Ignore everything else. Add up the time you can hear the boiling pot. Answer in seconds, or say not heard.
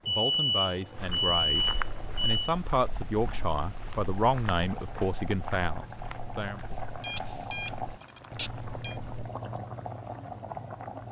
11 s.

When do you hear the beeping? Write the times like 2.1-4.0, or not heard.
0.1-2.4, 7.0-8.9.